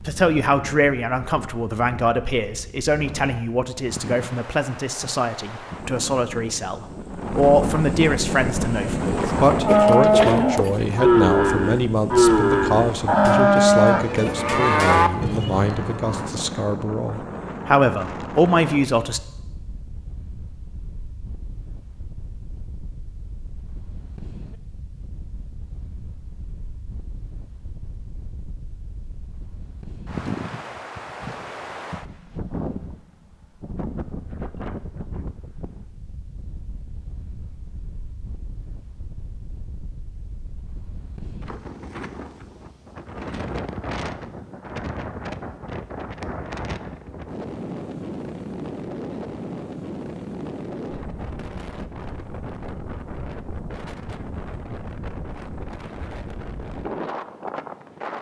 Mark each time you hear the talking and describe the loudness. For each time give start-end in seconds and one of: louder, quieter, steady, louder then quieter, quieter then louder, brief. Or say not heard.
0.0-19.2 steady.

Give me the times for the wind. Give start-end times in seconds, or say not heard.
0.0-58.1.